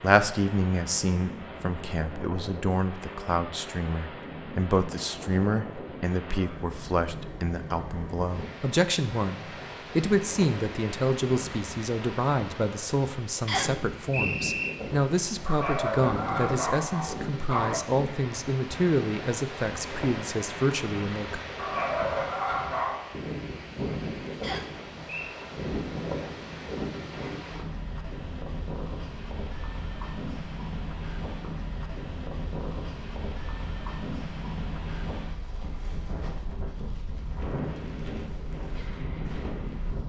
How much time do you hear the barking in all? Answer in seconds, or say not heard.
4 s.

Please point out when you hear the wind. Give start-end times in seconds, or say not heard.
0.0-40.0.